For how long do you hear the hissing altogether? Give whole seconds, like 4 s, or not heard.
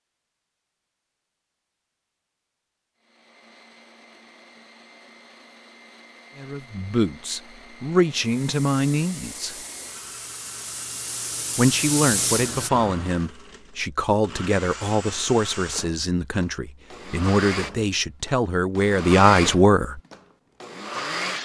5 s.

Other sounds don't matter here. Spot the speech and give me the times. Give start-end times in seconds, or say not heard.
6.3-9.6, 11.6-20.0.